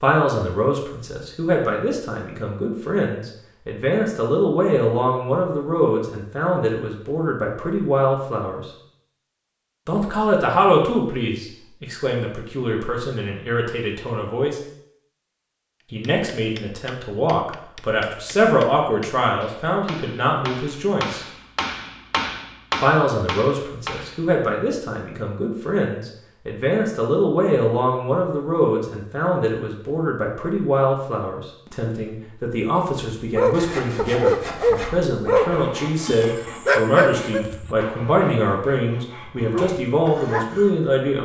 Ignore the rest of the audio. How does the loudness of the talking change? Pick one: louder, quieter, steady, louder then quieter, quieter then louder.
steady.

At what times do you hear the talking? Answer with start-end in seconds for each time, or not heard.
0.0-8.7, 9.8-14.6, 15.9-21.2, 22.8-41.1.